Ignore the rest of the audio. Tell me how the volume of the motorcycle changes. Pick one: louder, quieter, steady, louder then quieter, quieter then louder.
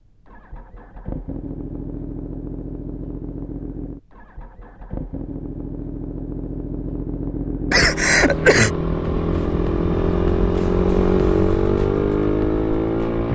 louder.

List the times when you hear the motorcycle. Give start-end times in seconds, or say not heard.
0.0-13.3.